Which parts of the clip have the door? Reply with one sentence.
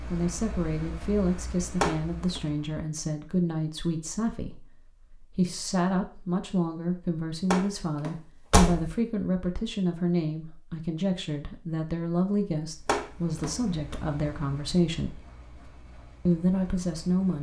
You can hear the door from 1.8 to 2.4 s, from 7.5 to 8.9 s and from 12.8 to 13.9 s.